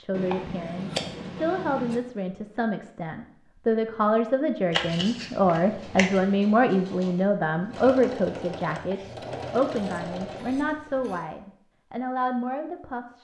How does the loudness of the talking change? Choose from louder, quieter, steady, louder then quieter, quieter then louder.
louder then quieter.